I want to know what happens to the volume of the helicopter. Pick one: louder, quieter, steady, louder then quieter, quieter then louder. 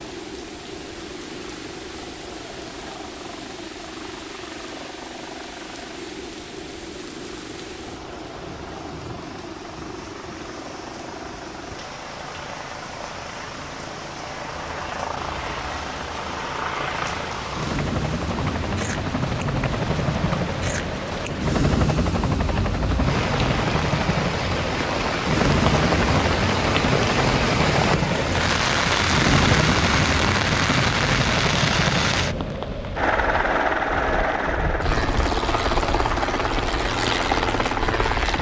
louder.